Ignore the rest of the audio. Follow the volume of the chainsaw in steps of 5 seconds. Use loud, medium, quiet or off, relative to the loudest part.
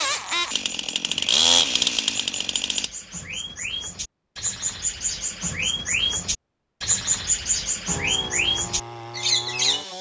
loud, quiet.